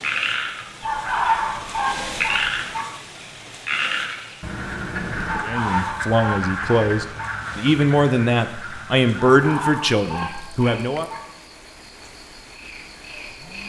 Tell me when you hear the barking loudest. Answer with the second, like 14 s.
1 s.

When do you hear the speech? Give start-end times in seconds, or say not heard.
5.4-11.1.